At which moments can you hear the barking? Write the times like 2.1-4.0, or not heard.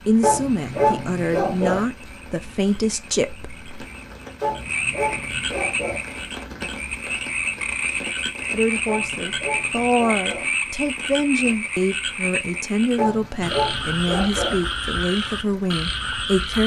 0.2-1.9, 4.4-6.0, 8.8-10.5, 12.9-14.6.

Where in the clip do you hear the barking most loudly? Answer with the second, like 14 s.
1 s.